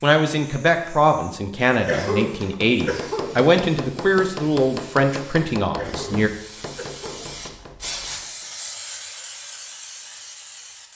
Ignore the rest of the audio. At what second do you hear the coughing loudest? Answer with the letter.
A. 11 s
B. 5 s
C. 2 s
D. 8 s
C.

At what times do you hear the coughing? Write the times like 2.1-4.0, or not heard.
1.9-3.4, 5.8-7.2.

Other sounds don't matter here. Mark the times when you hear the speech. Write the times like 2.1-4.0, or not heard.
0.0-6.3.